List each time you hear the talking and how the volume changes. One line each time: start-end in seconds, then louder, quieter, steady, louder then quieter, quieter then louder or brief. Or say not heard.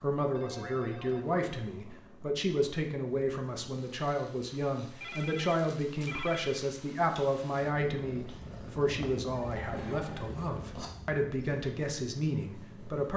0.0-13.1 steady.